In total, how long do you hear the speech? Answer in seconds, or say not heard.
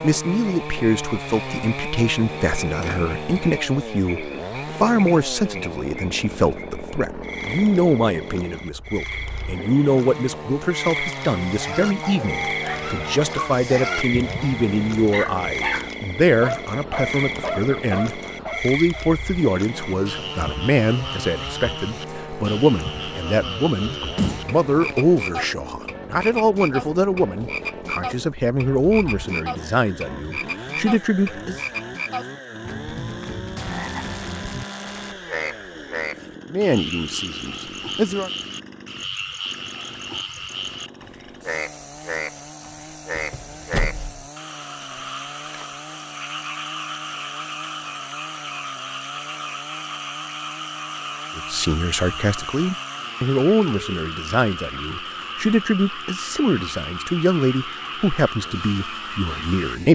42 s.